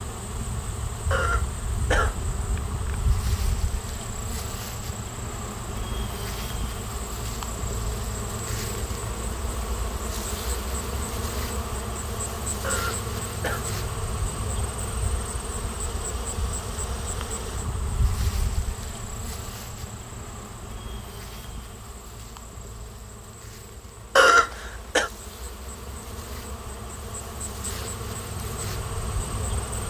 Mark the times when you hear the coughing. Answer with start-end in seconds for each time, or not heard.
1.1-3.0, 12.6-13.7, 24.1-25.1.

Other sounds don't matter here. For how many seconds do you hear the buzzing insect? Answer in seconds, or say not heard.
30 s.